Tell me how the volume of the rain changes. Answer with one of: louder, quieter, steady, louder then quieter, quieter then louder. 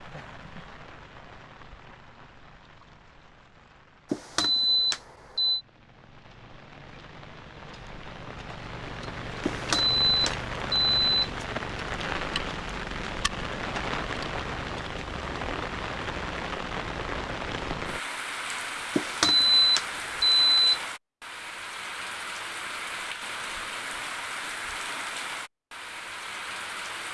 louder.